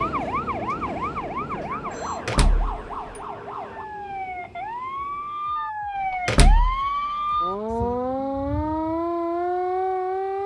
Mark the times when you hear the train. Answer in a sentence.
You can hear the train from 0.0 to 5.7 s.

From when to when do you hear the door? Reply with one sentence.
You can hear the door from 2.2 to 3.2 s and from 6.2 to 6.8 s.